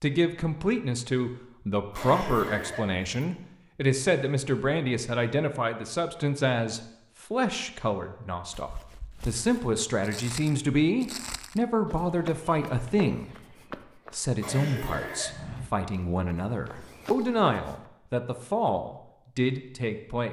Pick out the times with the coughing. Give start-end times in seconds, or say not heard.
1.9-3.0, 14.4-15.3.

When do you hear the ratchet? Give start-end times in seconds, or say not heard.
not heard.